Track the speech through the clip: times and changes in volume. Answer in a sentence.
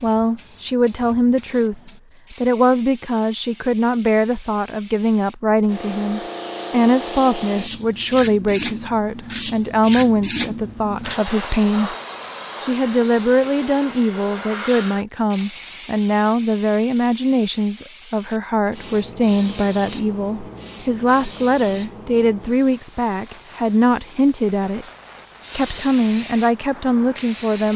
You can hear the speech from 0.0 to 11.9 s, at a steady volume; from 12.6 to 24.9 s, at a steady volume; and briefly from 25.6 to 27.7 s.